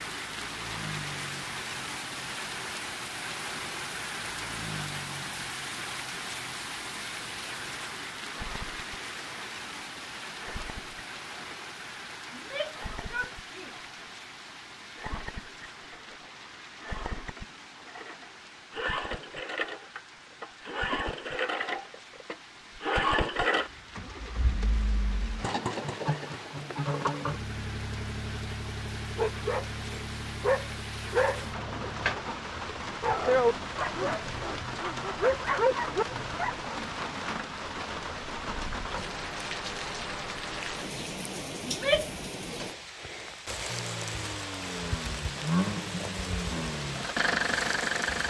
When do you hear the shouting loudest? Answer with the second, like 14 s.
42 s.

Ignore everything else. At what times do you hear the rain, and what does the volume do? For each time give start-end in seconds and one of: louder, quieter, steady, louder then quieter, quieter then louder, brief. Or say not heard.
0.0-48.2 quieter then louder.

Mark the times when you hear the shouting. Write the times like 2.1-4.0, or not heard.
12.3-13.8, 41.6-42.1.